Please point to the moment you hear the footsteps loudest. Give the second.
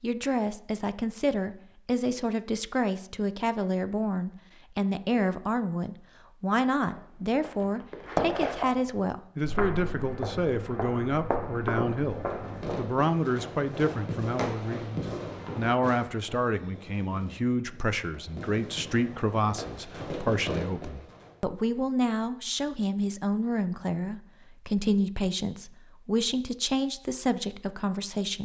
8 s.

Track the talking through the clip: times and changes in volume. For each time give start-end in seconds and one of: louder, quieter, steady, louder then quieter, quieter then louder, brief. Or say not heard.
0.0-28.3 steady.